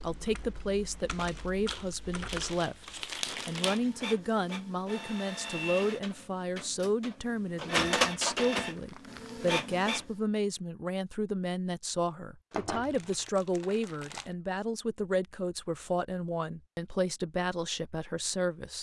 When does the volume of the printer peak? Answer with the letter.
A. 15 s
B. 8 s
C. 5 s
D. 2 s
B.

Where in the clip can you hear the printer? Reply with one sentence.
You can hear the printer from 3.2 to 10.1 s.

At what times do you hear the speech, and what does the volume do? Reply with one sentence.
You can hear the speech from 0.0 to 18.7 s, at a steady volume.